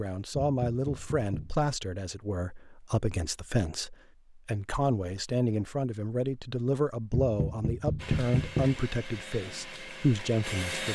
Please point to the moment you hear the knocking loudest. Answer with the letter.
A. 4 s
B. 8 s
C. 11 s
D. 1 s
B.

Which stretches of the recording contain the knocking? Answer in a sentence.
The knocking can be heard from 0.4 to 1.6 s and from 7.1 to 8.8 s.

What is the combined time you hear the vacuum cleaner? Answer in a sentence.
You can hear the vacuum cleaner for 3 seconds altogether.